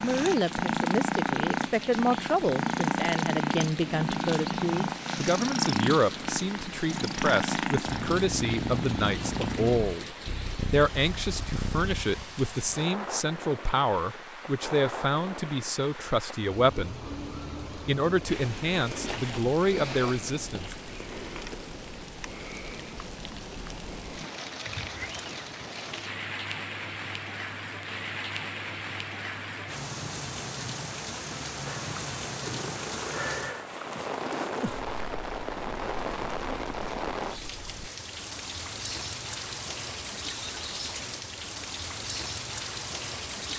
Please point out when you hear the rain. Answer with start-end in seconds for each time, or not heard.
0.0-43.5.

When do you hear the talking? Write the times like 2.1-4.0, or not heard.
0.0-17.0, 17.8-20.8.